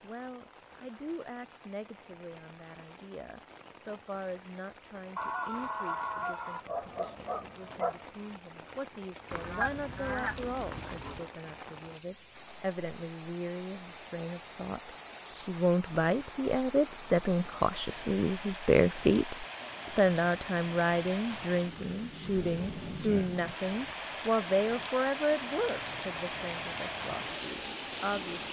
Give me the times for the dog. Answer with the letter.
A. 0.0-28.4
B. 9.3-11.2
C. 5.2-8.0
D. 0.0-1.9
C.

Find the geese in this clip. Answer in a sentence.
You can hear the geese from 9.3 to 11.2 s.